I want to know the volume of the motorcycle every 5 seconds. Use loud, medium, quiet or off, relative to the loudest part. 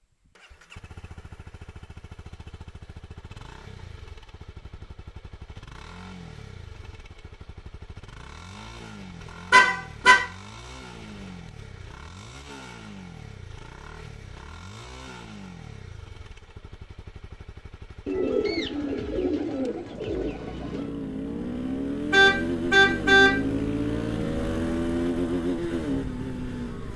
quiet, quiet, quiet, quiet, loud, loud.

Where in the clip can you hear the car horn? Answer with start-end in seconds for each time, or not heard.
9.5-10.2, 22.1-23.3.